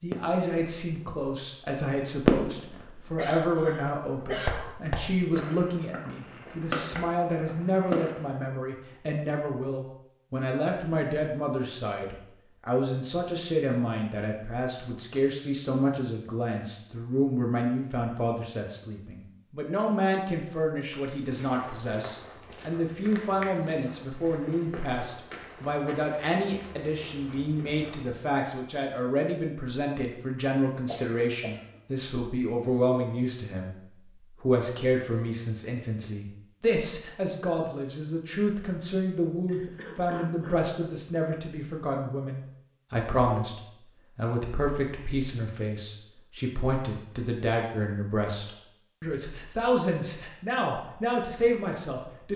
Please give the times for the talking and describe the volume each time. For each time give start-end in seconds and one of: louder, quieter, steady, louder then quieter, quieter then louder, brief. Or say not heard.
0.0-52.3 steady.